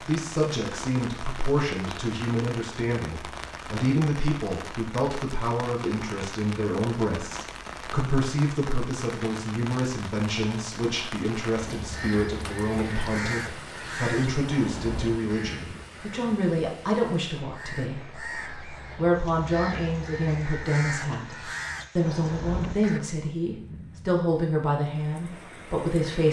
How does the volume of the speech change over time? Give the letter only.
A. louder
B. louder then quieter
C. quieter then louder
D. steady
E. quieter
D.